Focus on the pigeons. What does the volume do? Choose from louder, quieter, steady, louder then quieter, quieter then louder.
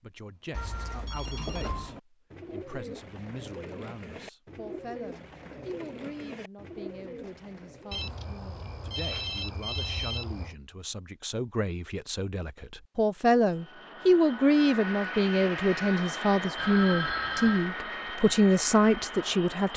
steady.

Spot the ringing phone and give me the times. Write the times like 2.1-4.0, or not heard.
0.5-1.9, 7.9-10.6, 16.6-17.7.